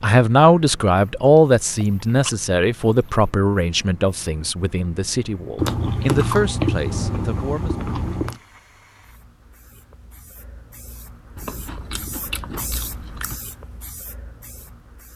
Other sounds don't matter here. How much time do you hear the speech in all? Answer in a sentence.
The speech can be heard for 8 seconds in total.